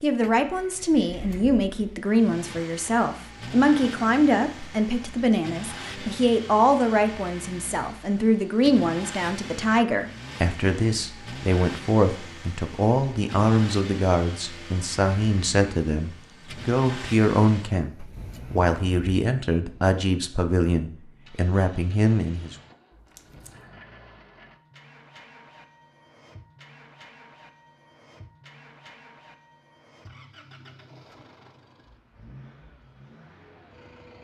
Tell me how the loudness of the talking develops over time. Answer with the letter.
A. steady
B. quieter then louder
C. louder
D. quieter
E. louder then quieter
A.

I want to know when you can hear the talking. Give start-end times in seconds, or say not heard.
0.0-22.6.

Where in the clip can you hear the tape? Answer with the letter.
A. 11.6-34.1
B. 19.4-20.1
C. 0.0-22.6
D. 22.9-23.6
D.